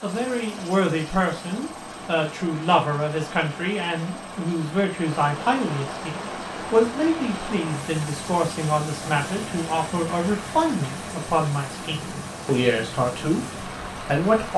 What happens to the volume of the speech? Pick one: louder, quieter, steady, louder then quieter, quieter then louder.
steady.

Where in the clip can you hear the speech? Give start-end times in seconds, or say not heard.
0.0-14.5.